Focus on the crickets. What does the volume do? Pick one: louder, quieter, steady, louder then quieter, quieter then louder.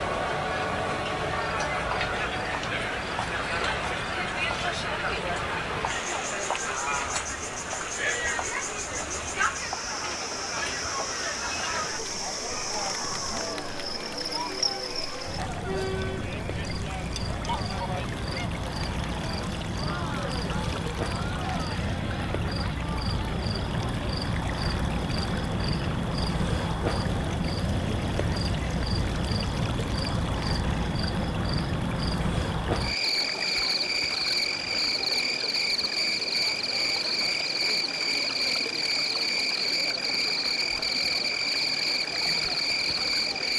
louder.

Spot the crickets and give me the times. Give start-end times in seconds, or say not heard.
0.0-43.5.